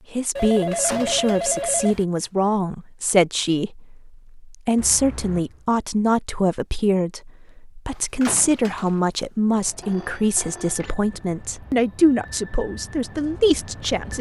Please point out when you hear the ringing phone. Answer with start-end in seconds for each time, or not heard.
0.3-2.0, 4.8-5.7, 9.8-10.9.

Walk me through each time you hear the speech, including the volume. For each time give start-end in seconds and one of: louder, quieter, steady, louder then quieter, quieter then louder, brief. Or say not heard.
0.1-14.1 steady.